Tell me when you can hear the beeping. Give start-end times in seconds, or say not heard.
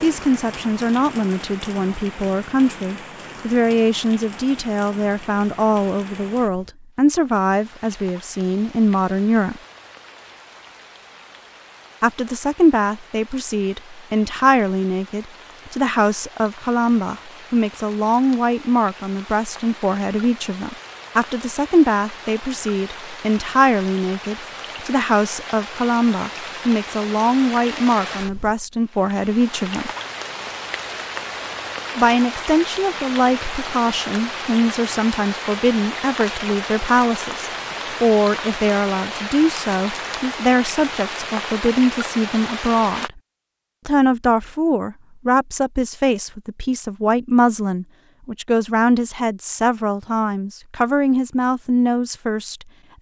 not heard.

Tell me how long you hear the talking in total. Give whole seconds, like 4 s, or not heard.
48 s.